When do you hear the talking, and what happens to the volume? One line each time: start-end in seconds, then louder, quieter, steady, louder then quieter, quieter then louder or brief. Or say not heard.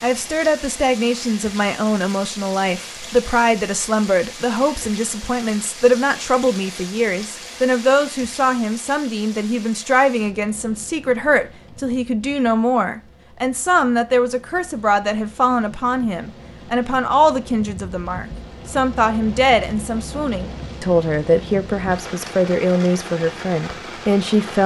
0.0-24.6 steady.